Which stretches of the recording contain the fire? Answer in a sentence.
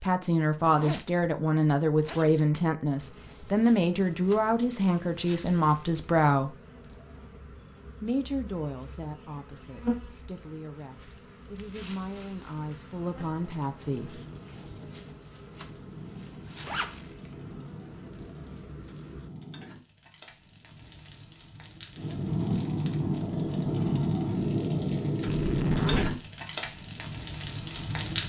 The fire can be heard from 13.8 to 28.2 s.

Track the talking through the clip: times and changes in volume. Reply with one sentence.
You can hear the talking from 0.0 to 6.5 s, at a steady volume; and from 8.0 to 14.2 s, getting quieter then louder.